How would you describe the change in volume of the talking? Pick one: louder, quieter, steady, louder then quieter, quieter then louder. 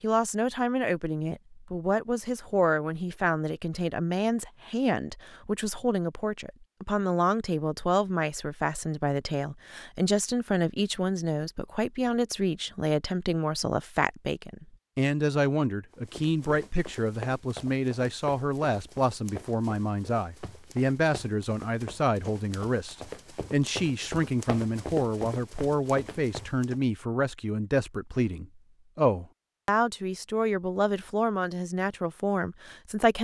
steady.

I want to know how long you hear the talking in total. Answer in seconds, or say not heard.
33 s.